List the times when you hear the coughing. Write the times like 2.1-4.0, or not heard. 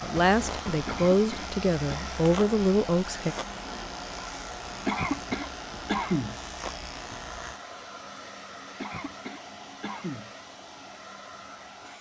0.8-2.0, 4.8-6.4, 8.8-10.3.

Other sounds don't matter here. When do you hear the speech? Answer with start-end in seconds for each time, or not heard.
0.0-3.4.